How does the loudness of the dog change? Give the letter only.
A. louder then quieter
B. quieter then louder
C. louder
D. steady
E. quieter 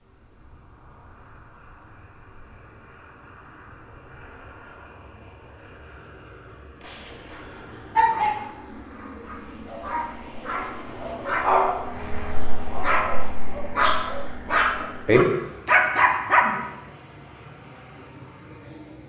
C.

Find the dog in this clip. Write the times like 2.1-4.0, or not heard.
8.0-16.6.